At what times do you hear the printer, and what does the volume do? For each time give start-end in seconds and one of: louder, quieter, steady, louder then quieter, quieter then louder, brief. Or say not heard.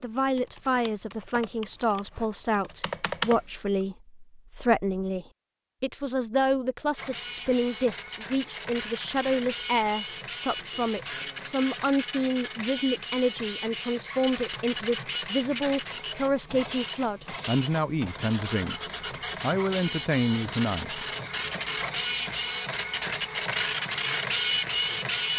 7.0-25.3 louder.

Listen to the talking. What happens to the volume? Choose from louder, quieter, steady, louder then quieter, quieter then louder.
steady.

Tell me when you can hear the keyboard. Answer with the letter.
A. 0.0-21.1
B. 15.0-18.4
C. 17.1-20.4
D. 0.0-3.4
D.